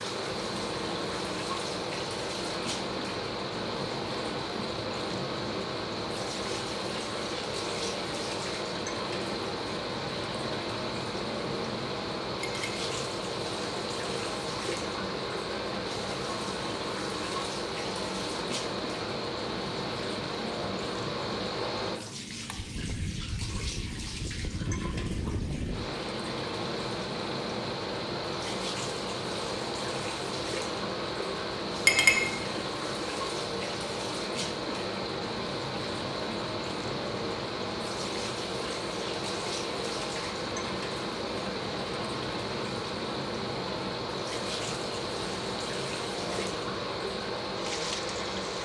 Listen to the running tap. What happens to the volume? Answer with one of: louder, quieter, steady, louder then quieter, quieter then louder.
steady.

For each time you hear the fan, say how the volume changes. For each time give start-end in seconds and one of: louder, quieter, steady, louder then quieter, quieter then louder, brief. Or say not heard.
0.0-48.5 steady.